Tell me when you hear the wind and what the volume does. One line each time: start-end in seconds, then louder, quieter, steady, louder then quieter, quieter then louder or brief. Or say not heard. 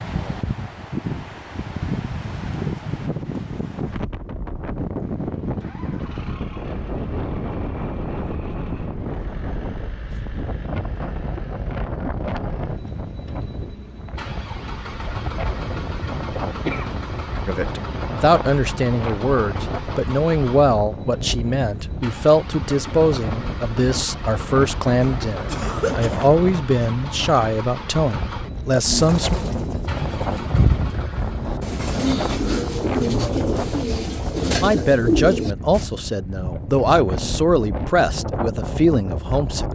0.0-39.7 steady.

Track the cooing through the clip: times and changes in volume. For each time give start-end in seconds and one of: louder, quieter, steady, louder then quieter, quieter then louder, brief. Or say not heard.
28.9-35.9 louder.